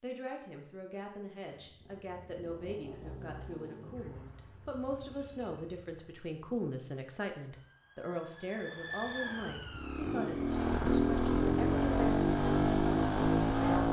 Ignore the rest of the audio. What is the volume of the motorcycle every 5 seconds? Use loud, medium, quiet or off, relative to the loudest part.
quiet, quiet, loud.